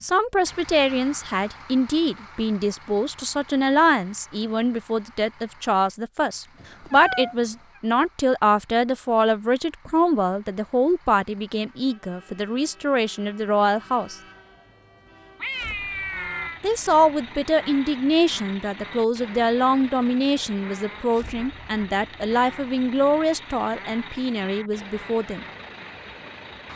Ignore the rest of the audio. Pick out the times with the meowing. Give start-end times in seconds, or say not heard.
6.5-7.8, 15.3-16.6.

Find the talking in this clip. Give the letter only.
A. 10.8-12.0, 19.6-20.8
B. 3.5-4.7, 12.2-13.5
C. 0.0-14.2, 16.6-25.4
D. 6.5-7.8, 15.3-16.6
C.